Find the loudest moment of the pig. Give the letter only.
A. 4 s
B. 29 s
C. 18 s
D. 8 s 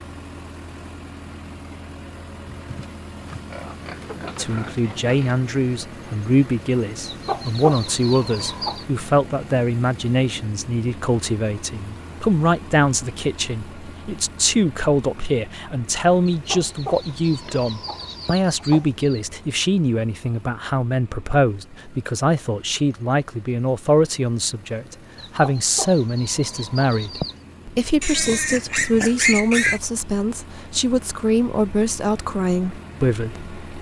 B.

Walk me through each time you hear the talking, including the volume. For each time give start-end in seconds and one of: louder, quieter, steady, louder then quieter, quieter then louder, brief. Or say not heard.
4.3-33.5 steady.